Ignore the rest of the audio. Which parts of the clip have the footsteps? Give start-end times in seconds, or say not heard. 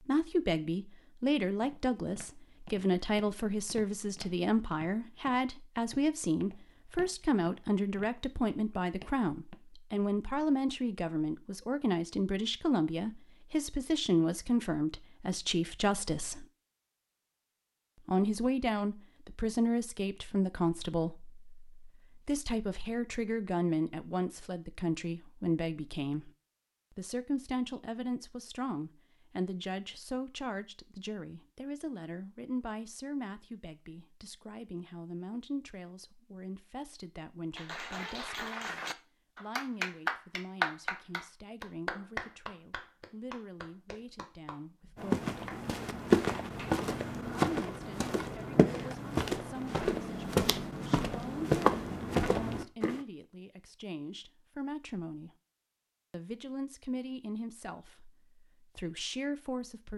1.5-9.6, 45.0-53.0.